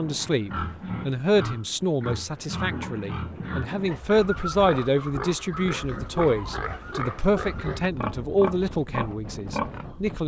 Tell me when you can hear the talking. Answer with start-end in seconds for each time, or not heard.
0.0-10.2.